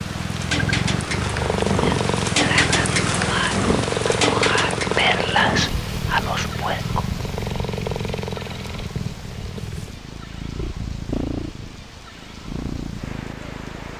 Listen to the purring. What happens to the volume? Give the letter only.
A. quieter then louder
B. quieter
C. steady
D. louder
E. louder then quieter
B.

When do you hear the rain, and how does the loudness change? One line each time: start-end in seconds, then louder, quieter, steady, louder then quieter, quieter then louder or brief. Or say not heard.
0.0-13.9 quieter.